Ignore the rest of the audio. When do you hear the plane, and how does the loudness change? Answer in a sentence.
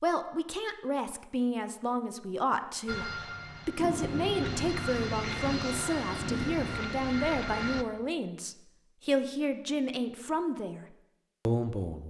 The plane can be heard from 2.9 to 7.8 s, getting louder.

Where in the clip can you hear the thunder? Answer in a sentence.
You can hear the thunder from 3.8 to 6.8 s.